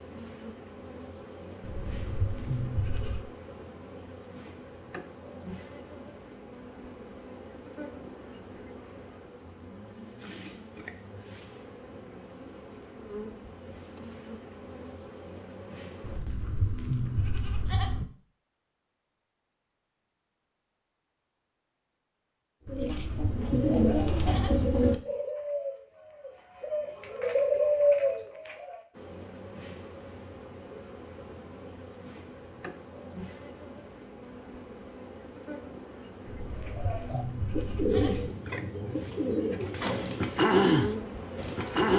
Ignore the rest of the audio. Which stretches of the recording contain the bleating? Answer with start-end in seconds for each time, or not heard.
1.6-3.2, 16.0-18.1, 22.6-24.7, 36.2-38.3.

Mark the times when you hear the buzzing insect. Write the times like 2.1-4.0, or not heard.
0.0-16.2, 28.9-41.9.